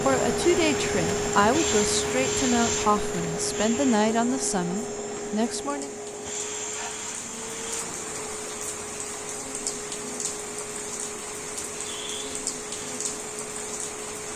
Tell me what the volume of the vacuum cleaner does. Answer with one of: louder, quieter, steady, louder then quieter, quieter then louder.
quieter.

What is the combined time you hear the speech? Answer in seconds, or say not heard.
6 s.